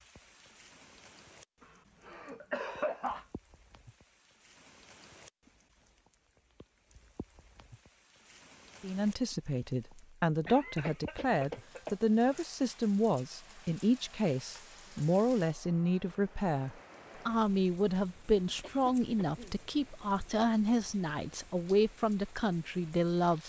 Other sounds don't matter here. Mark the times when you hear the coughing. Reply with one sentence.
The coughing can be heard from 1.6 to 3.2 s, from 10.4 to 12.4 s and from 18.6 to 19.6 s.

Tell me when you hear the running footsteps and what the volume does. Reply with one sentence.
The running footsteps can't be heard in this clip.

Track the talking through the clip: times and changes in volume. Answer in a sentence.
The talking can be heard from 8.8 to 23.4 s, at a steady volume.